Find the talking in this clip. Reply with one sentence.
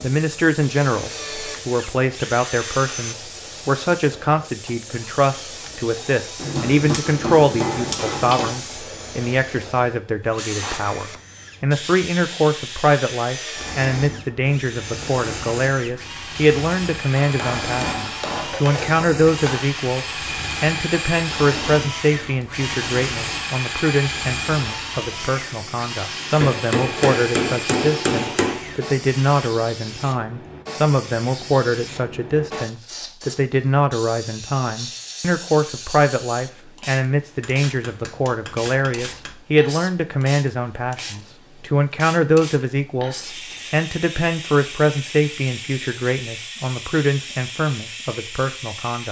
You can hear the talking from 0.0 to 49.0 s.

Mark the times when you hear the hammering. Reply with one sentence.
The hammering can be heard from 6.3 to 8.6 s, from 17.1 to 19.7 s, from 26.4 to 28.6 s and from 37.4 to 39.4 s.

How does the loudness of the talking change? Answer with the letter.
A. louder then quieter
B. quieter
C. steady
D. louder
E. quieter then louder
C.